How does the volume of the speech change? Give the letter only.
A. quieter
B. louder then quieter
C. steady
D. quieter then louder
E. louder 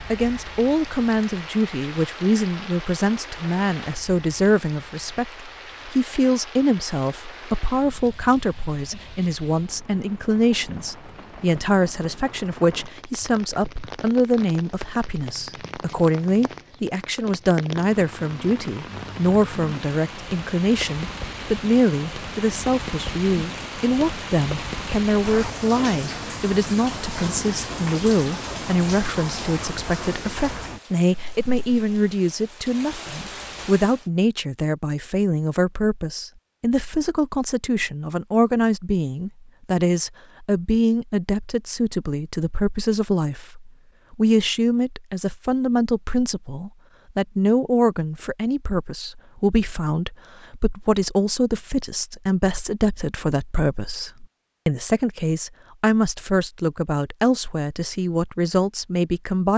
C.